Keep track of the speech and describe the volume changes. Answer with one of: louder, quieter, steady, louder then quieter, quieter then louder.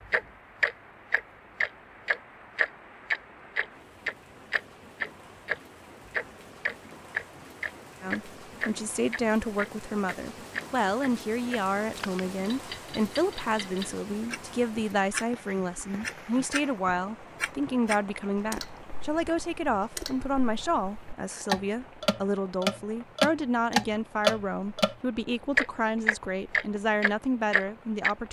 steady.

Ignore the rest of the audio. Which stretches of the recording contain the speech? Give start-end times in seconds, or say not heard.
8.0-28.2.